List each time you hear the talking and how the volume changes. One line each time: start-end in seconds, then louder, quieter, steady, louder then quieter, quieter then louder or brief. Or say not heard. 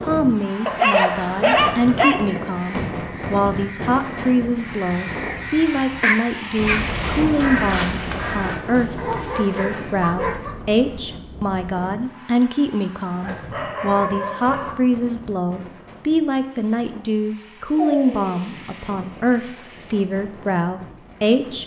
0.0-21.6 steady.